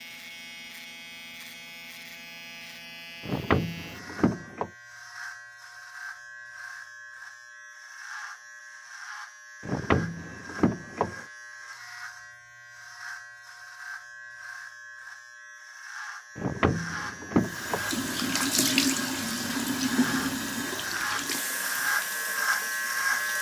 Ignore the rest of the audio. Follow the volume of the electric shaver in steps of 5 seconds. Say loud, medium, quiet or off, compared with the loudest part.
quiet, quiet, quiet, medium, loud.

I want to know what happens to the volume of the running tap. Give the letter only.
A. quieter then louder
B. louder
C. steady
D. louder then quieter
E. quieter
E.